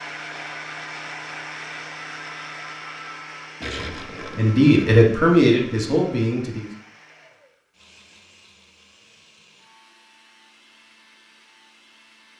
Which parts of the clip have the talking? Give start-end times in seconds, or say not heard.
3.6-6.7.